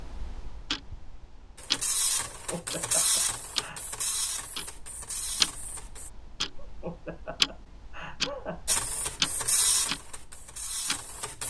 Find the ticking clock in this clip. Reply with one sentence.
You can hear the ticking clock from 0.0 to 11.2 s.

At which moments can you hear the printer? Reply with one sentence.
The printer can be heard from 1.6 to 6.1 s and from 8.7 to 11.4 s.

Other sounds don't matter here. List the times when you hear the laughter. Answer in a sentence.
You can hear the laughter from 2.3 to 3.8 s and from 6.5 to 8.8 s.